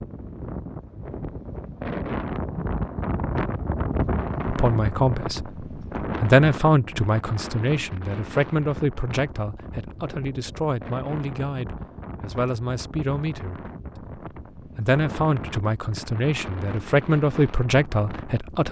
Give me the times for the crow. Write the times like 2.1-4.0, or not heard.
not heard.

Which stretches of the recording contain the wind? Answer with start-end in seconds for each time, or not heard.
0.0-18.6.